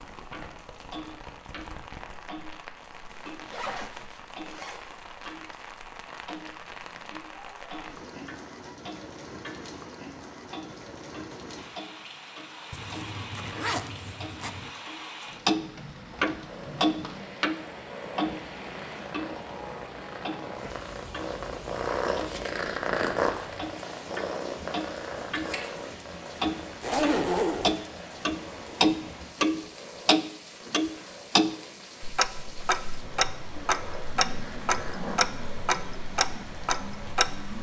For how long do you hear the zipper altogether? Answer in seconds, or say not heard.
5 s.